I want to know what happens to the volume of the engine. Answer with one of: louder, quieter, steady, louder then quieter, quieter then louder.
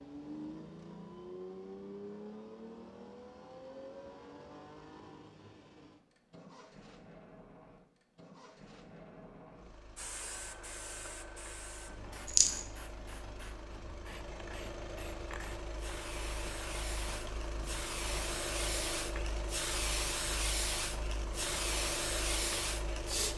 quieter then louder.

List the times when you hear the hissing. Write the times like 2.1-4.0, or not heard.
9.9-23.3.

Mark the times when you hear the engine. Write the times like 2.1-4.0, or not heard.
0.0-23.3.